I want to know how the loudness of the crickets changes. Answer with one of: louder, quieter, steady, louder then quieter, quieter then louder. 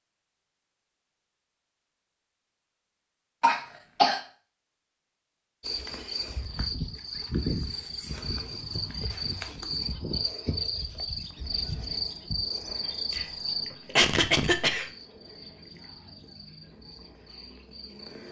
quieter.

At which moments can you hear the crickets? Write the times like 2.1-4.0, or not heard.
5.6-18.2.